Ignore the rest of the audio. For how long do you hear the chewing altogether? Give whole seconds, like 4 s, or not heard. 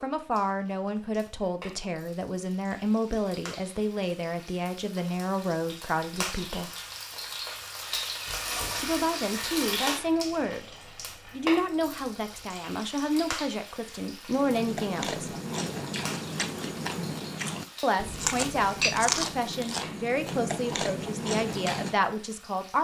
8 s.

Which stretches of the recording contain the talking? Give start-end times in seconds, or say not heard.
0.0-6.7, 8.8-10.7, 11.3-15.3, 17.8-22.7.